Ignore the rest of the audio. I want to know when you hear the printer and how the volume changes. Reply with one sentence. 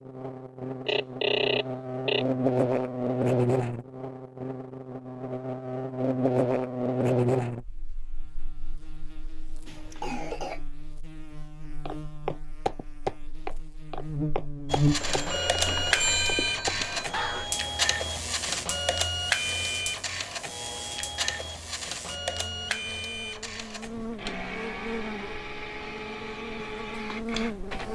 You can hear the printer from 14.7 to 27.9 s, getting quieter.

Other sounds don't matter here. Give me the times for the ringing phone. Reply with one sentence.
The ringing phone can be heard from 0.8 to 2.2 s and from 15.0 to 17.1 s.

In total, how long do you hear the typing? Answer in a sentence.
You can't hear the typing here.